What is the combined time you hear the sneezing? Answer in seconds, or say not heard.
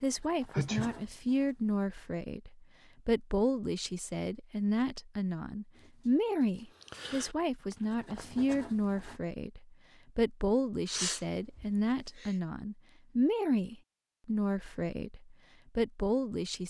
2 s.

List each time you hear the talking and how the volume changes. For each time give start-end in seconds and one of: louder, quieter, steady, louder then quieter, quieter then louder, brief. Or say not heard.
0.0-16.6 steady.